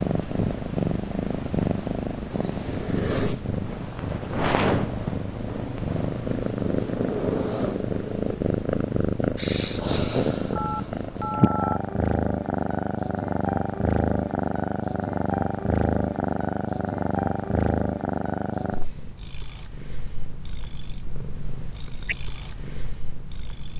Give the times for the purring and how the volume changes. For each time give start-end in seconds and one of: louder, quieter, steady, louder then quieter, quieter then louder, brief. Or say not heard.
0.0-23.7 quieter.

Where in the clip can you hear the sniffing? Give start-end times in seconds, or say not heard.
8.9-9.8.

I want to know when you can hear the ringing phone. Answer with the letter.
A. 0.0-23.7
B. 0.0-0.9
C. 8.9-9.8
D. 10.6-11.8
D.